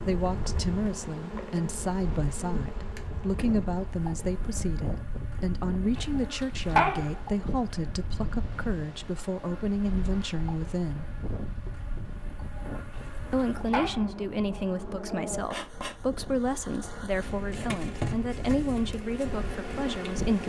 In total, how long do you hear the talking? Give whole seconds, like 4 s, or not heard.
18 s.